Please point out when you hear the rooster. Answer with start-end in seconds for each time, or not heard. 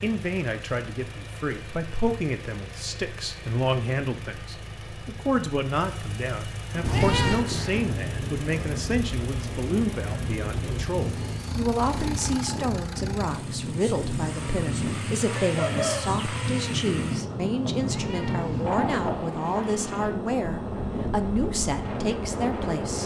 15.3-16.8.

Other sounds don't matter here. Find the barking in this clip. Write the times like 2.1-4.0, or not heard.
not heard.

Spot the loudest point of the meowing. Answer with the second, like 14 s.
7 s.